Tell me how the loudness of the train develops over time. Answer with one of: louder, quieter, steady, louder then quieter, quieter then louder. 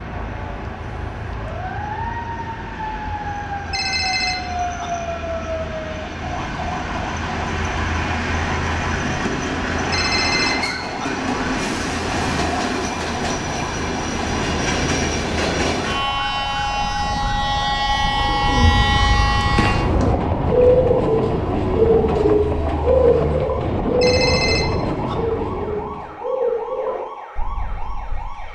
louder.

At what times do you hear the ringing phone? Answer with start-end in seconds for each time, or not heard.
3.7-4.9, 9.9-11.1, 24.0-25.1.